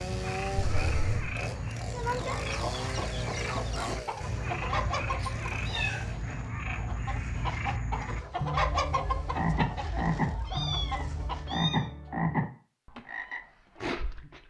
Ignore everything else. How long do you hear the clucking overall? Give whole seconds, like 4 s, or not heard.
10 s.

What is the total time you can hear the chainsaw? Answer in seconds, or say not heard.
6 s.